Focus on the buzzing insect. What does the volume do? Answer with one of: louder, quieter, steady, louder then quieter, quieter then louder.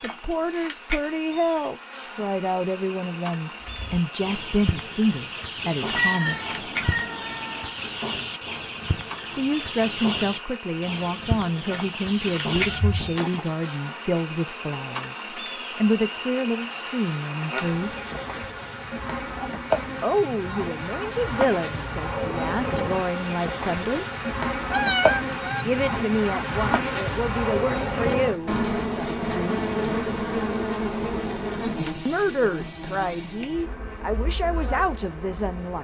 louder.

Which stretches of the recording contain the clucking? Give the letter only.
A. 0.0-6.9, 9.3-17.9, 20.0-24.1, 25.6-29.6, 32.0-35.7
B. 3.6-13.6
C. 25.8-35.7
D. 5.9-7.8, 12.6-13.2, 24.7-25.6
B.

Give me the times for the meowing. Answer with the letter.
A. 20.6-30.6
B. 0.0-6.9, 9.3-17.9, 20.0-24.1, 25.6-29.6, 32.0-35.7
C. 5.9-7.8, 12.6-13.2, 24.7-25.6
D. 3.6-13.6
C.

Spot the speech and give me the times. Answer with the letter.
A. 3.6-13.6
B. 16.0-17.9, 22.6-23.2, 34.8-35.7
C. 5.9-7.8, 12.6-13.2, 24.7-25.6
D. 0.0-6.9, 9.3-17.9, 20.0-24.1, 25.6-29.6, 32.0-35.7
D.